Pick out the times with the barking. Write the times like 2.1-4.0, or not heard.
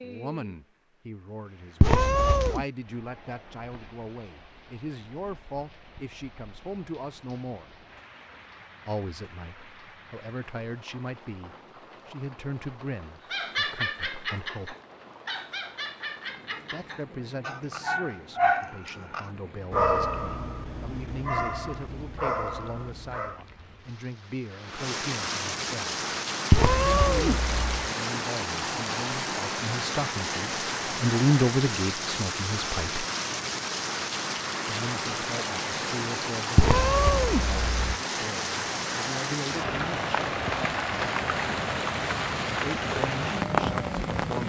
13.3-23.4.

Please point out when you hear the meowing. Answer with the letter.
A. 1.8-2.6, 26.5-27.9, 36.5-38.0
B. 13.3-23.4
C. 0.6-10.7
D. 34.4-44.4
A.